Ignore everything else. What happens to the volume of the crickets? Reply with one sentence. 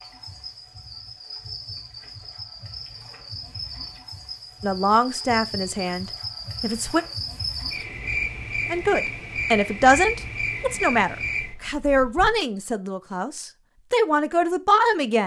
The loudness of the crickets goes up.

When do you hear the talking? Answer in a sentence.
You can hear the talking from 4.6 to 7.0 s and from 8.7 to 15.2 s.